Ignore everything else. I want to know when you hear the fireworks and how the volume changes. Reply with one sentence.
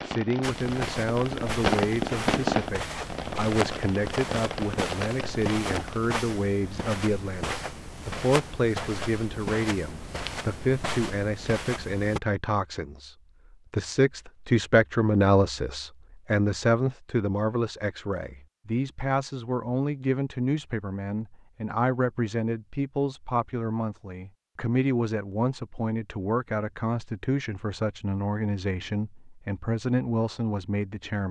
You can hear the fireworks from 0.0 to 6.0 s, getting louder then quieter.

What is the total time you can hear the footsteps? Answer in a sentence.
The footsteps can be heard for 12 seconds in total.